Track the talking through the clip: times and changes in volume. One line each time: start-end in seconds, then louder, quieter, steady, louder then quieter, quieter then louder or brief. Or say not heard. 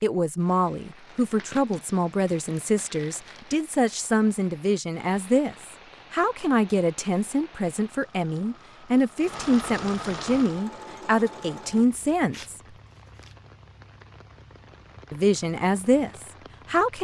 0.0-12.6 steady
15.1-16.9 brief.